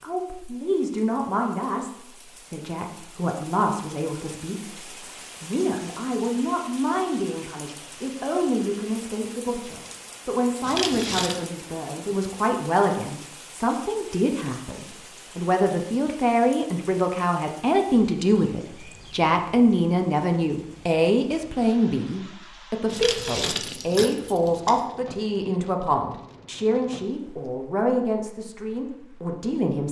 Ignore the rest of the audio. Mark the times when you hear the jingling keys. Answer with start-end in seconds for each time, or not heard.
10.6-11.4, 22.9-24.8.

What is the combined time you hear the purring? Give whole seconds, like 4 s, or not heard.
not heard.